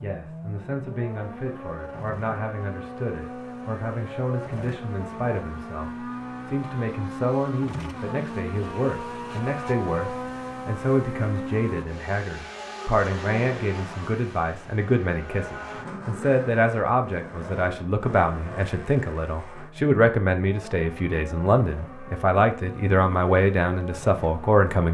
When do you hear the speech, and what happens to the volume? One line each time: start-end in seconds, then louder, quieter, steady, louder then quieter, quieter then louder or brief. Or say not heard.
0.0-24.8 louder.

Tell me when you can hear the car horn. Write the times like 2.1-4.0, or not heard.
not heard.